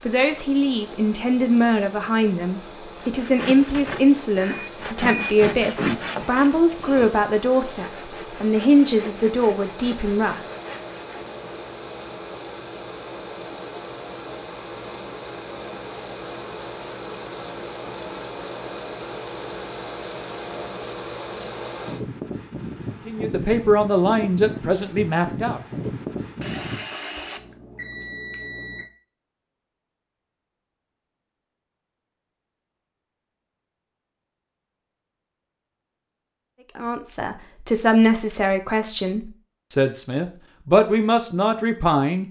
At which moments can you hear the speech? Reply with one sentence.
You can hear the speech from 0.1 to 10.6 s, from 23.1 to 25.6 s and from 36.8 to 42.2 s.